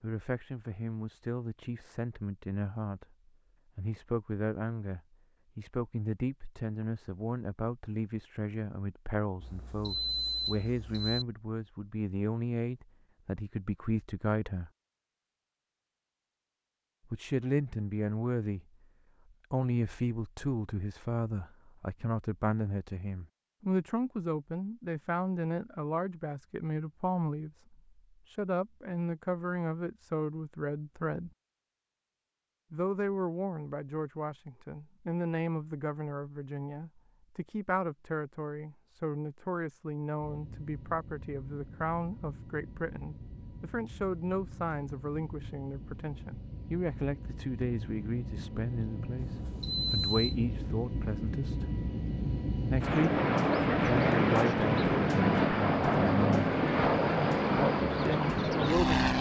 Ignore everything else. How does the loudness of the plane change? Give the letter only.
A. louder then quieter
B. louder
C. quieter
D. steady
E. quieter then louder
B.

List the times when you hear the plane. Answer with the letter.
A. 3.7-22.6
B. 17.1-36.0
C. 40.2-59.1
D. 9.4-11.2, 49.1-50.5
C.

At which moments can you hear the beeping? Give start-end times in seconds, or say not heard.
9.4-11.2, 49.1-50.5.